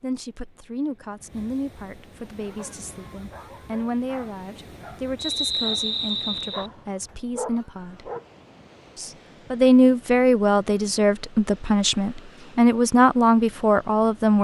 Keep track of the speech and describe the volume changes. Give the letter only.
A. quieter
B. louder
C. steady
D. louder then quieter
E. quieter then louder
B.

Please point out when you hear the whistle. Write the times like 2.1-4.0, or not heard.
5.2-6.7.